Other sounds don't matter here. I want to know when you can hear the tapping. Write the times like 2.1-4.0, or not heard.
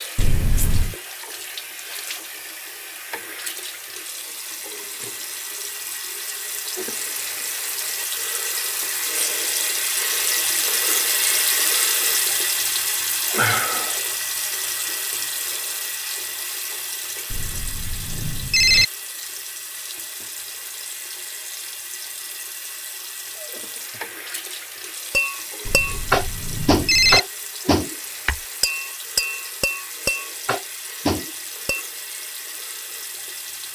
25.1-31.9.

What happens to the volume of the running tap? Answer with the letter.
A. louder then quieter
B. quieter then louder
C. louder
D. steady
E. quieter
A.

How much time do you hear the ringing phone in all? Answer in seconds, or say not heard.
4 s.